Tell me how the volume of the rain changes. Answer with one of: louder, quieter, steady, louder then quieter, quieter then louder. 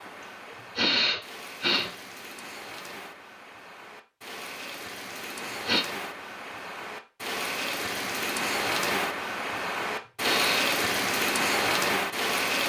louder.